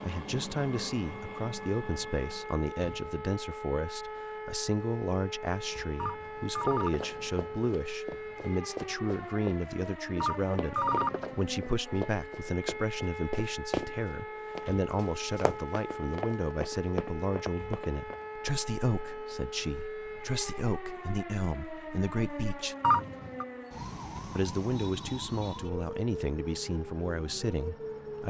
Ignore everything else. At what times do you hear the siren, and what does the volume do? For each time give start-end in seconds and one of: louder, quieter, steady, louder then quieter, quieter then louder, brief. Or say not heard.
0.1-28.2 steady.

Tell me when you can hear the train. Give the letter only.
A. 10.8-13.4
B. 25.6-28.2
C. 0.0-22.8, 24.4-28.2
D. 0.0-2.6
D.